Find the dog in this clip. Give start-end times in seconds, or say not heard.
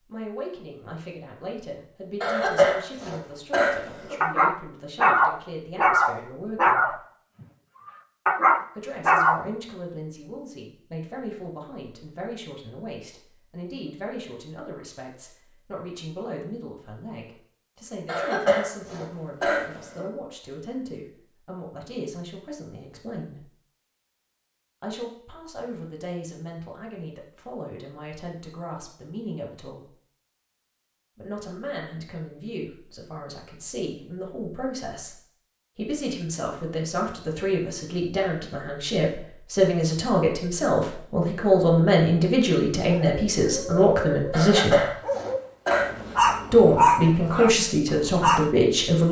4.2-9.4, 42.9-48.5.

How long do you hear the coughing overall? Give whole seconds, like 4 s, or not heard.
6 s.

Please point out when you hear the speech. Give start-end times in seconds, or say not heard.
0.1-7.0, 8.8-23.4, 24.8-29.9, 31.1-35.1, 35.8-45.0, 46.5-49.0.